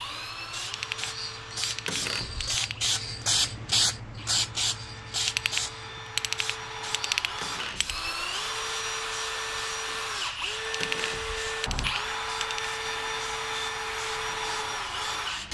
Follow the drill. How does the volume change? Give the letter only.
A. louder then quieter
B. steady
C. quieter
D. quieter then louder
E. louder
E.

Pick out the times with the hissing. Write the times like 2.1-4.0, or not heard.
0.0-15.4.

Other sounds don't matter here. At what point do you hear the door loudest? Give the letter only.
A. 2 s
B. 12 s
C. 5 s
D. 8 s
A.